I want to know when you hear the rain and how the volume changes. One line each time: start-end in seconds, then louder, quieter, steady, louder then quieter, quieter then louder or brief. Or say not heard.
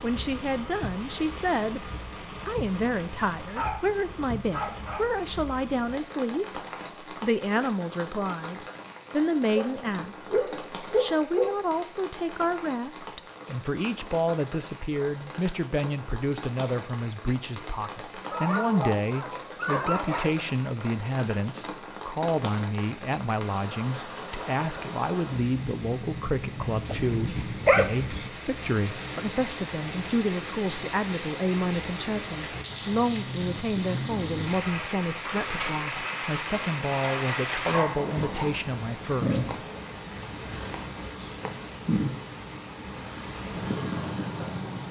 0.0-44.8 louder.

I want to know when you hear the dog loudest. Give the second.
28 s.